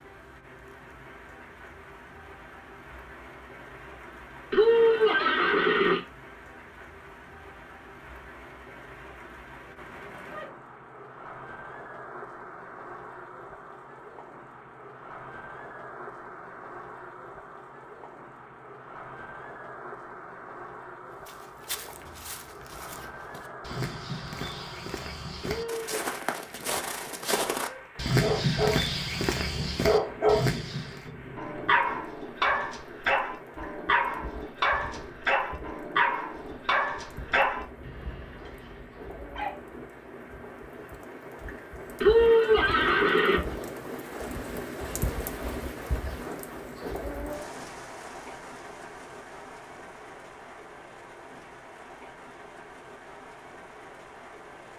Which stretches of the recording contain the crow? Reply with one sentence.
The crow can't be heard in this clip.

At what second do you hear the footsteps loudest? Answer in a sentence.
The loudest moment of the footsteps is at 28 seconds.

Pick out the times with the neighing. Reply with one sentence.
You can hear the neighing from 4.5 to 6.0 s, from 25.4 to 26.0 s and from 42.0 to 43.4 s.